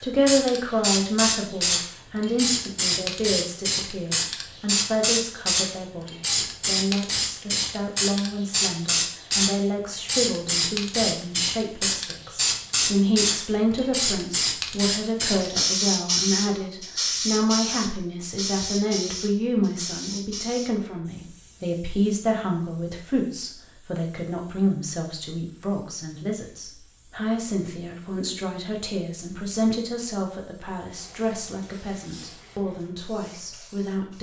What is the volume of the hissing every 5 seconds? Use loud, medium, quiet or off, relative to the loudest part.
loud, loud, loud, loud, quiet, quiet, quiet.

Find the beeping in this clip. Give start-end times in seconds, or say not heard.
not heard.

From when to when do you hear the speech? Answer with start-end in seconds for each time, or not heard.
0.0-34.1.